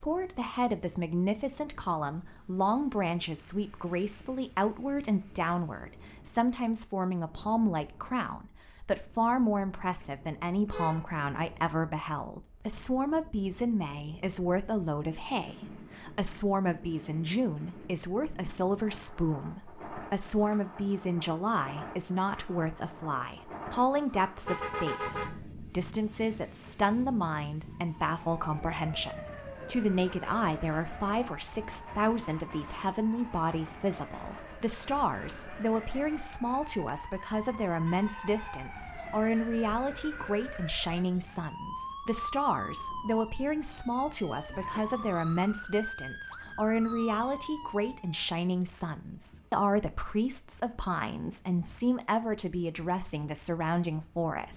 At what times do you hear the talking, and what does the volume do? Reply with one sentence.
You can hear the talking from 0.0 to 54.5 s, at a steady volume.